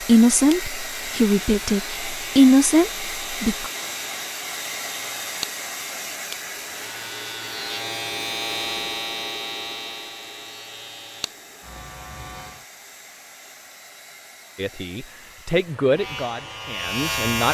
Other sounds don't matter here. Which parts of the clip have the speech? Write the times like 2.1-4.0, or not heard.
0.1-3.7, 14.6-17.4.